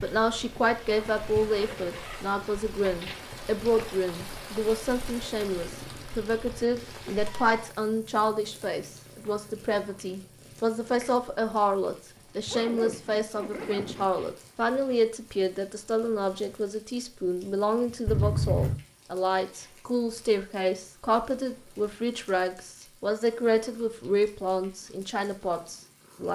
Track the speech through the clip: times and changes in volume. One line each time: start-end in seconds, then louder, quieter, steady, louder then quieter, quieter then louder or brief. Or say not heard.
0.0-26.2 steady.